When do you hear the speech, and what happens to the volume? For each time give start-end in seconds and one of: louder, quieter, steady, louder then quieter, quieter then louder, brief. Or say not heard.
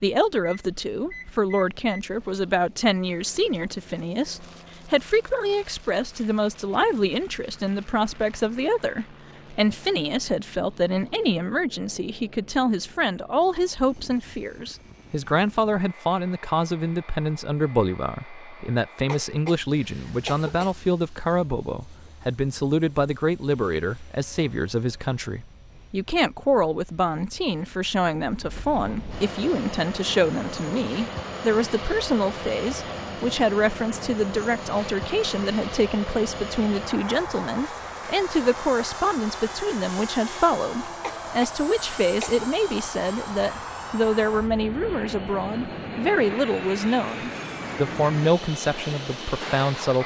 0.0-50.0 steady.